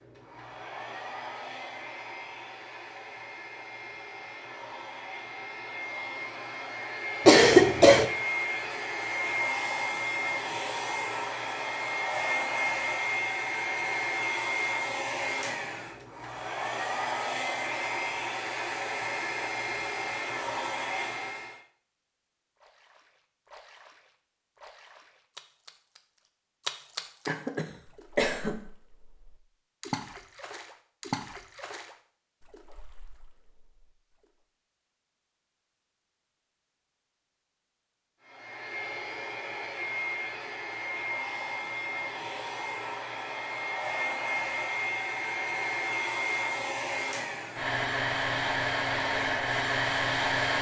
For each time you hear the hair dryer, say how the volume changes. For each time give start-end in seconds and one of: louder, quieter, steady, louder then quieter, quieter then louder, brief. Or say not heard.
0.0-21.6 louder
38.2-50.5 louder.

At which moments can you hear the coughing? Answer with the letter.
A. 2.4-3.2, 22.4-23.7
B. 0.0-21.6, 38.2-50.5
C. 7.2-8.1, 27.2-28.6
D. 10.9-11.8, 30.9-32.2
C.